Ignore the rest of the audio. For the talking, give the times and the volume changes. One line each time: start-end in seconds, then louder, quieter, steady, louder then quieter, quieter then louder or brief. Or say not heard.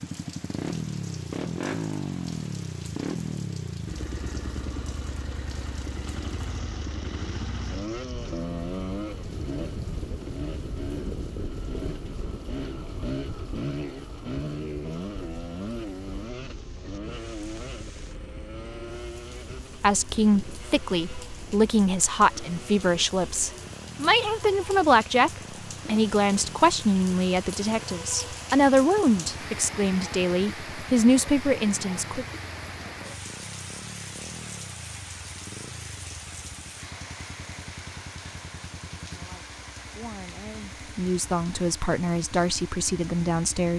19.8-32.2 steady
39.0-43.7 louder.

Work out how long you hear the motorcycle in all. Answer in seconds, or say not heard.
44 s.